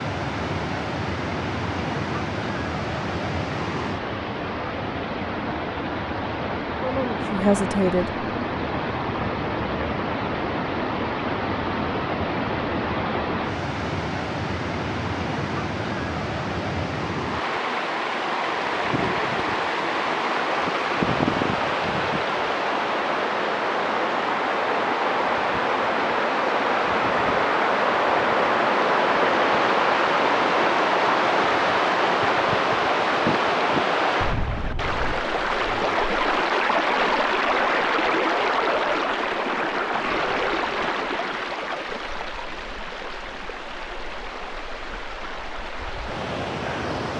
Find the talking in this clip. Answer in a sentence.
The talking can be heard from 6.8 to 8.1 s.